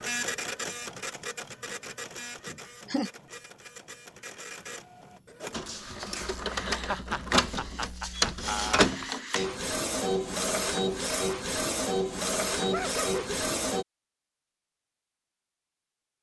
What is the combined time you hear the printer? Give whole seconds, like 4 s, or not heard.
14 s.